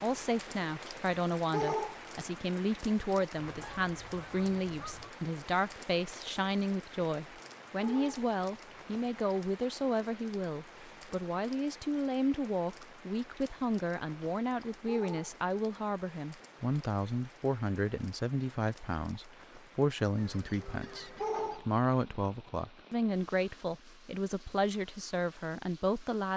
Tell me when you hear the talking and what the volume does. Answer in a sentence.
The talking can be heard from 0.0 to 26.3 s, at a steady volume.